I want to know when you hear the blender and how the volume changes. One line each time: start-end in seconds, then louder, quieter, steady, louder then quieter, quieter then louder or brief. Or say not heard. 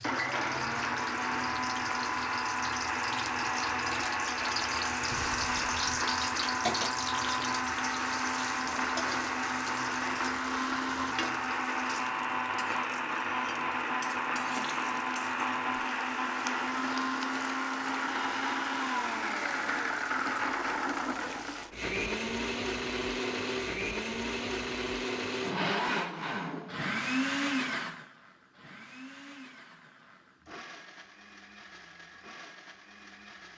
0.0-33.5 quieter.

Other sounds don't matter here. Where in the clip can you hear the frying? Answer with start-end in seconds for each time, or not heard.
0.0-21.7.